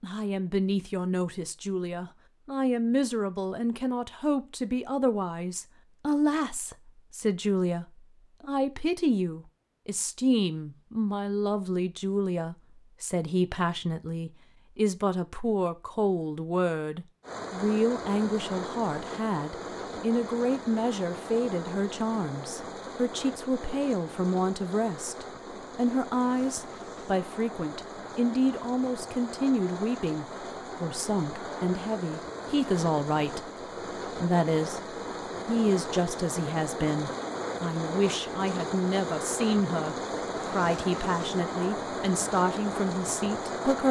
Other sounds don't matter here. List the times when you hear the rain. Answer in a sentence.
You can hear the rain from 17.2 to 43.8 s.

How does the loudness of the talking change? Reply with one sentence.
The volume of the talking stays about the same.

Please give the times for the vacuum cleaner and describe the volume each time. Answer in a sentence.
The vacuum cleaner can't be heard in this clip.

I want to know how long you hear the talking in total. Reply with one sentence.
You can hear the talking for 44 seconds altogether.